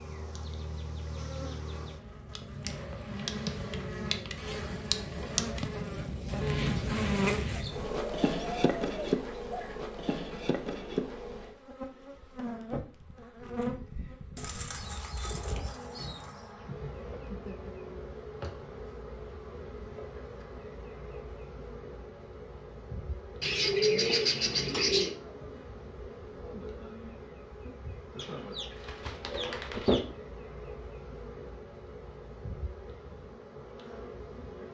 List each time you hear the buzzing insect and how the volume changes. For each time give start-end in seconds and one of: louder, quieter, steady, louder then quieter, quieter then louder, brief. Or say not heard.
0.0-34.6 quieter.